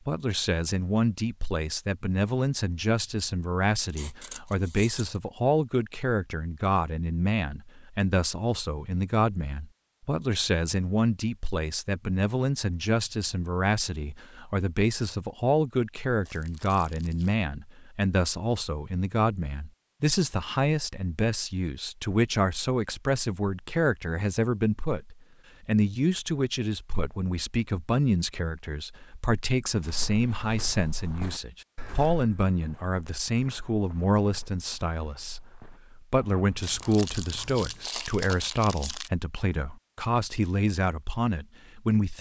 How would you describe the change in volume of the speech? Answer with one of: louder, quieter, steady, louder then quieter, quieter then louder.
steady.